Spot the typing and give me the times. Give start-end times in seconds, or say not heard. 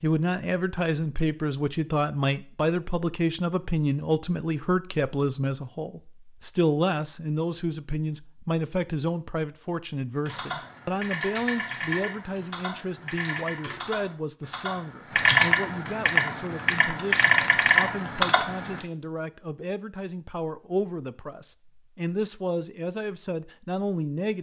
10.2-18.9.